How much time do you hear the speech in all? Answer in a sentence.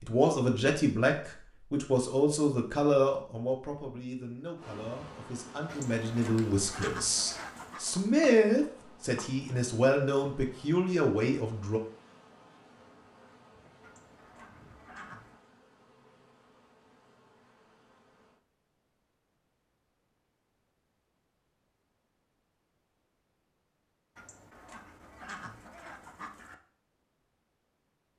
You can hear the speech for 12 seconds altogether.